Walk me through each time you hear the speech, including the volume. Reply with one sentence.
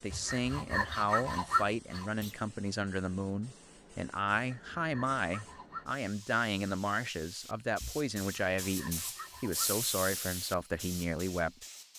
The speech can be heard from 0.0 to 11.6 s, at a steady volume.